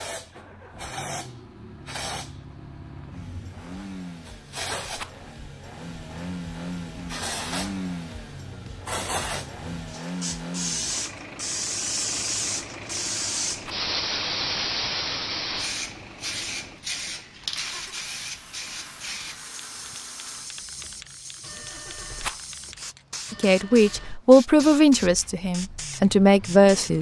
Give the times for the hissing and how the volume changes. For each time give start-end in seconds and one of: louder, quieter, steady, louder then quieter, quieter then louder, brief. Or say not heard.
0.0-26.9 louder then quieter.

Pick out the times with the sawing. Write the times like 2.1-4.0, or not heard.
not heard.